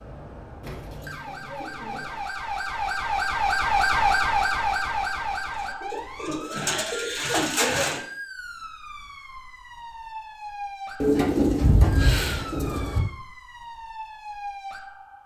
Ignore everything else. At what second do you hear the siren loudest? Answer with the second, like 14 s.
4 s.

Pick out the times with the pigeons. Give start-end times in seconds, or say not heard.
0.6-2.2, 5.8-8.0, 11.0-13.0.